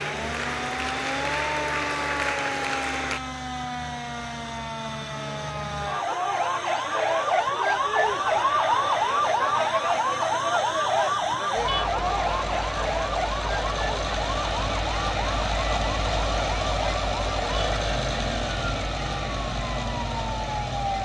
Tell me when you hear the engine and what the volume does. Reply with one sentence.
The engine can be heard from 0.0 to 21.0 s, getting louder.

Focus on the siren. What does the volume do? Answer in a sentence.
The loudness of the siren goes up, then down.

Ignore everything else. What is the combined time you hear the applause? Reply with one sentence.
The applause can be heard for 3 seconds in total.